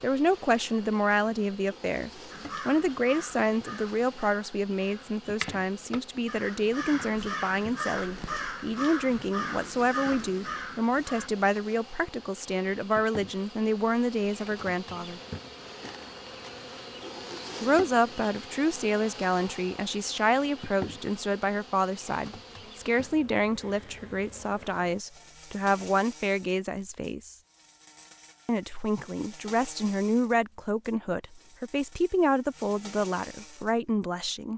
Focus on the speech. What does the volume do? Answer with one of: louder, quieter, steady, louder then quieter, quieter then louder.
steady.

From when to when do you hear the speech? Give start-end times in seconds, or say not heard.
0.0-15.2, 17.6-27.4, 28.4-34.5.